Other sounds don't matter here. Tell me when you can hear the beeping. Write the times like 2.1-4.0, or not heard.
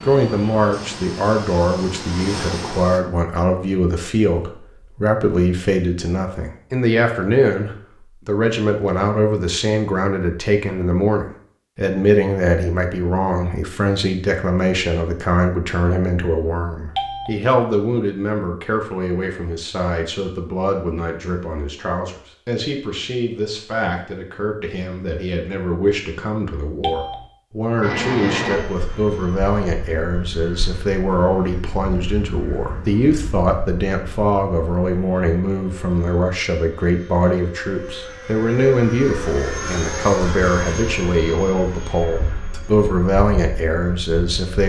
16.9-17.4, 26.8-27.2.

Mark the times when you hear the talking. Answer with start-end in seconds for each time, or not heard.
0.0-44.6.